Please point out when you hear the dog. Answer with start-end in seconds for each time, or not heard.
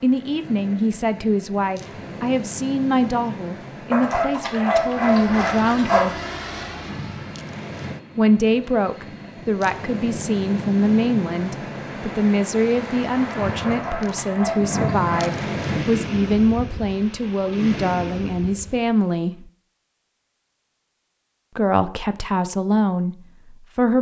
3.9-6.1, 13.6-15.3.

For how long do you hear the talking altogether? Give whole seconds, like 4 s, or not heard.
20 s.